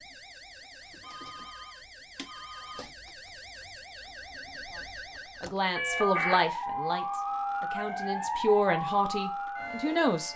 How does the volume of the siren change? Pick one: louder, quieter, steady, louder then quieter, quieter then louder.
louder.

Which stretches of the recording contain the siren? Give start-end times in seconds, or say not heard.
0.0-10.3.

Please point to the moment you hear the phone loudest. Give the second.
6 s.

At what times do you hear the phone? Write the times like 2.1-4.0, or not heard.
1.0-2.9, 5.8-6.4.